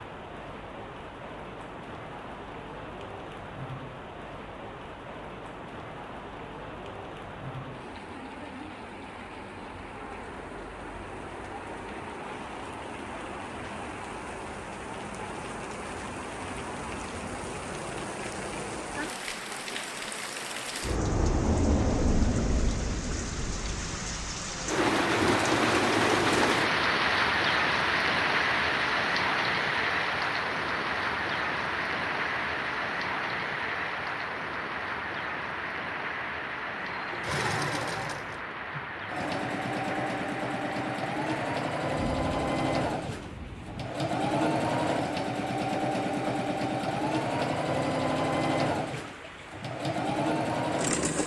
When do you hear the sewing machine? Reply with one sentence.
The sewing machine can be heard from 36.8 to 51.2 s.